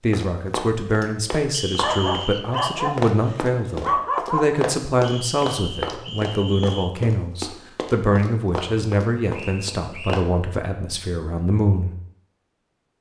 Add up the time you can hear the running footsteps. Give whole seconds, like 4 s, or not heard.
10 s.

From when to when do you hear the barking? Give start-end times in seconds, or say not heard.
1.8-4.6.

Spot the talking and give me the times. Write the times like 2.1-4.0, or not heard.
0.0-11.9.